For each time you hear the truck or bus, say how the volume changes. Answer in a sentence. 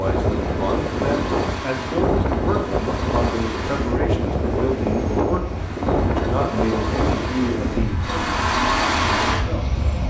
You can hear the truck or bus from 0.0 to 10.0 s, getting louder.